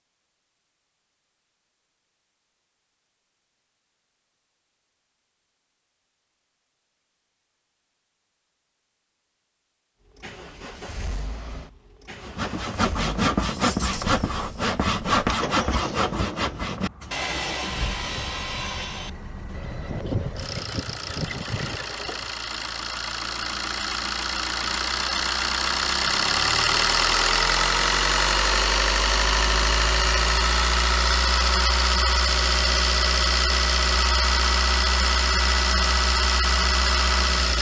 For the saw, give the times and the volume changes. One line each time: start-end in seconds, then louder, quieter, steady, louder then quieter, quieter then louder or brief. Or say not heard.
12.2-22.4 quieter.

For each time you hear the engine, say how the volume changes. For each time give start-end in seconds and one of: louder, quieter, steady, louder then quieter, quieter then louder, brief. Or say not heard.
10.1-37.5 louder.